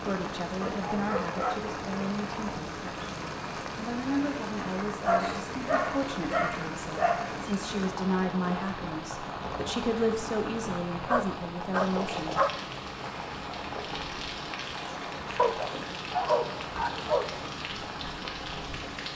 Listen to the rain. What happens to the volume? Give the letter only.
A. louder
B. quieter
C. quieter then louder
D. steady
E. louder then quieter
D.